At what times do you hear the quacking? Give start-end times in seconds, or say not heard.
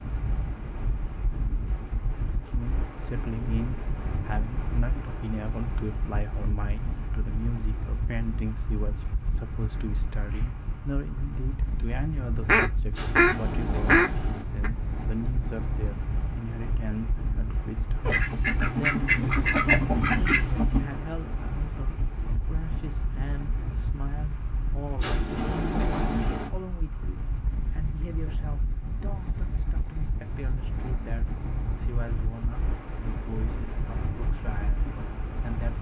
12.3-14.7, 18.1-21.0.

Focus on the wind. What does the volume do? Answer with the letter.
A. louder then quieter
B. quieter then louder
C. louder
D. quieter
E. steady
E.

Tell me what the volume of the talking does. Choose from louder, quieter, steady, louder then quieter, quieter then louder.
quieter.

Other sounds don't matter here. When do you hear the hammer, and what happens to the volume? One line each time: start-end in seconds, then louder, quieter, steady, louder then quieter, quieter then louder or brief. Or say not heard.
not heard.